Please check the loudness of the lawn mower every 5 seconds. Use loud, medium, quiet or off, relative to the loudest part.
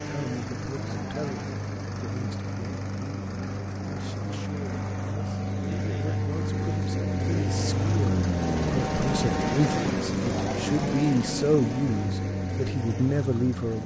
medium, loud, loud.